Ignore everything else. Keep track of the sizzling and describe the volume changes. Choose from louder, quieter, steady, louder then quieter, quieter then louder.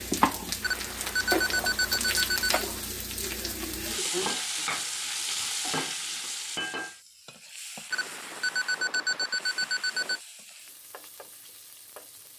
quieter.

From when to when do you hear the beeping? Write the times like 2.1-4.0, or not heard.
0.6-2.6, 7.9-10.2.